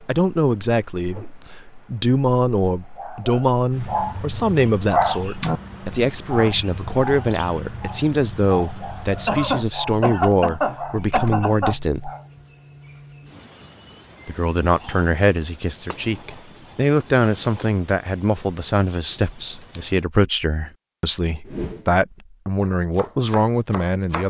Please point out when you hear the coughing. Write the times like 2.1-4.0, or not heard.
9.2-11.8.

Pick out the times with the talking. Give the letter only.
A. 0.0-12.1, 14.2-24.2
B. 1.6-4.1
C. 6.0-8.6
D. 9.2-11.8
A.